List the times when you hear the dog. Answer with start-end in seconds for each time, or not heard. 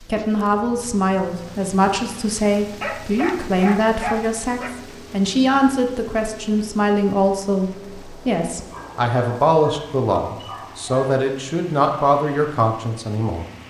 2.8-4.8, 8.7-11.2.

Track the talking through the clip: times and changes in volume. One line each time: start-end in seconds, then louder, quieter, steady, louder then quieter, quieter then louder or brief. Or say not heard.
0.1-13.4 steady.